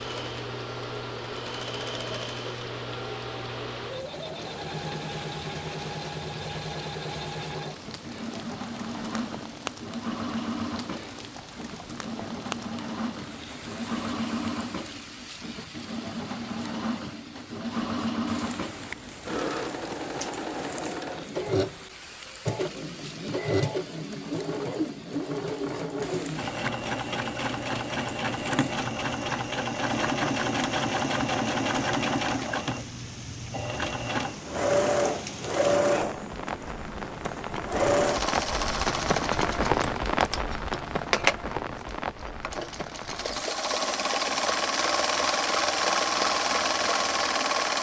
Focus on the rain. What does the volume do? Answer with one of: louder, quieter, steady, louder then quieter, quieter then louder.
louder.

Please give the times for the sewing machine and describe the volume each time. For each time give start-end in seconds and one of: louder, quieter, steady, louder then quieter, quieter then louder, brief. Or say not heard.
0.0-47.7 louder.